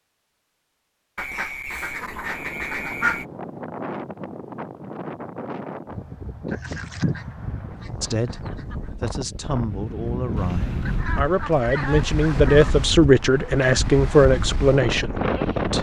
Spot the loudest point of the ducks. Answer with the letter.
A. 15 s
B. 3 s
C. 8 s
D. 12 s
B.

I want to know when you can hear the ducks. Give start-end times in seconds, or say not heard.
1.1-3.2, 6.5-8.8, 10.8-12.8.